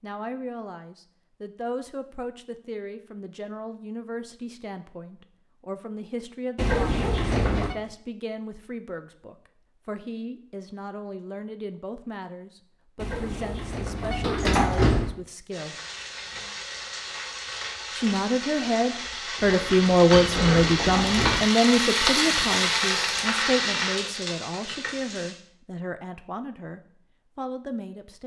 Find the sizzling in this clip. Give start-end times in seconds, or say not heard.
15.5-25.4.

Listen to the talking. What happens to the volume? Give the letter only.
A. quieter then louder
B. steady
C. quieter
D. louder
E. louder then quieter
E.